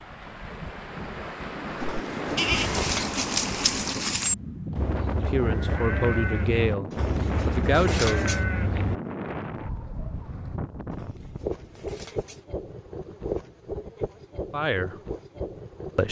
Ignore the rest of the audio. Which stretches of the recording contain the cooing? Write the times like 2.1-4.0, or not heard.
1.8-3.4, 6.9-8.4, 10.9-12.4.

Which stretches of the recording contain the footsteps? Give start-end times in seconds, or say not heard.
not heard.